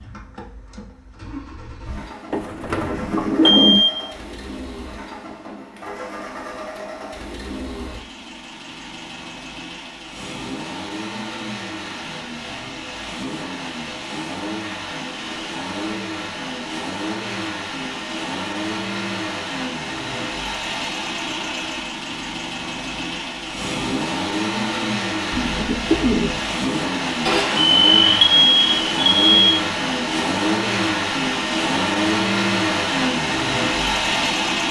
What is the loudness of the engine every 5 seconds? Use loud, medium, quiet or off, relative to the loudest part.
quiet, quiet, medium, medium, medium, loud, loud.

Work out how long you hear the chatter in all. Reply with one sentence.
The chatter can't be heard in this clip.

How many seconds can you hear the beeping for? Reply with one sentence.
The beeping can be heard for 3 seconds in total.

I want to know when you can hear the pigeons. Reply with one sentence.
The pigeons can be heard from 2.3 to 3.9 s and from 25.3 to 26.4 s.